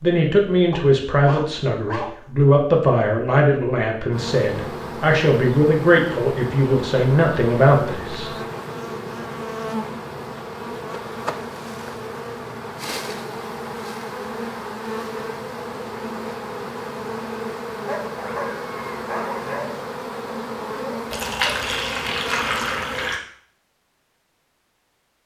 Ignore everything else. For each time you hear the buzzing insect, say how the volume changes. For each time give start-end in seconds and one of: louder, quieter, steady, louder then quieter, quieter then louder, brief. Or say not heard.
4.1-23.1 steady.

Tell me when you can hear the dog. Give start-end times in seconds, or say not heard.
0.7-2.1, 17.9-19.6.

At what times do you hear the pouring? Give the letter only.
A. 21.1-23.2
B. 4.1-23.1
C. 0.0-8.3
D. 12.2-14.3
A.